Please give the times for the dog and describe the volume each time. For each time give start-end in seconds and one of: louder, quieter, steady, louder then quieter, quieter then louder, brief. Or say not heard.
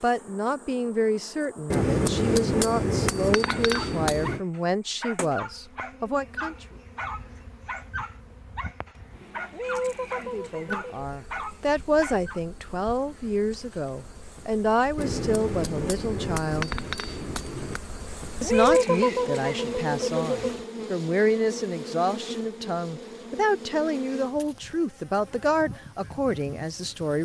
3.5-12.4 steady.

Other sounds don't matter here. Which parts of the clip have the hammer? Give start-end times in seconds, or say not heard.
1.7-4.4, 14.9-17.8.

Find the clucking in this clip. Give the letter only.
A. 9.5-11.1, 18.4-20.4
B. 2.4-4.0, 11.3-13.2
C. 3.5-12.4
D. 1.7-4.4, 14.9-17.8
A.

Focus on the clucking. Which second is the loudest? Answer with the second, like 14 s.
19 s.